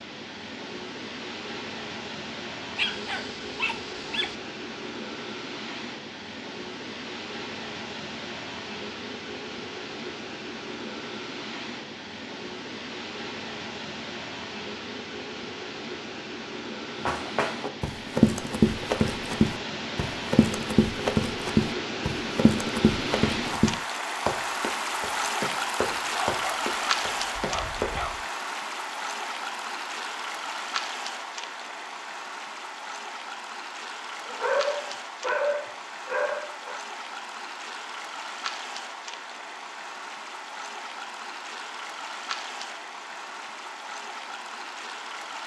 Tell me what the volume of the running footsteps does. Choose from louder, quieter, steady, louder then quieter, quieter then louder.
quieter.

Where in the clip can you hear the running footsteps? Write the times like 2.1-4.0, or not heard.
17.1-27.9.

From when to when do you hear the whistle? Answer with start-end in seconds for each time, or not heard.
not heard.